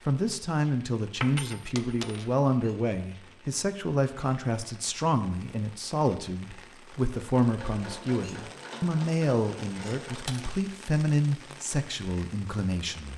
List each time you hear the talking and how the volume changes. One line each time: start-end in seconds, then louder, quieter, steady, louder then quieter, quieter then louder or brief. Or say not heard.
0.1-13.1 steady.